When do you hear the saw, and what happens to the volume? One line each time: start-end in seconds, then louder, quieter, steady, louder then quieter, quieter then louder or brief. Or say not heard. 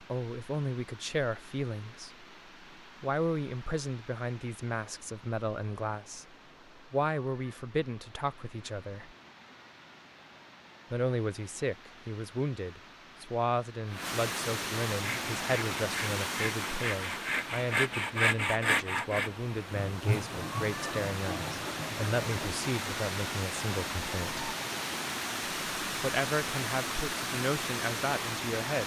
14.9-22.6 louder then quieter.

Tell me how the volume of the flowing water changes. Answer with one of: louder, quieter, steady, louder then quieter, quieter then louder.
louder.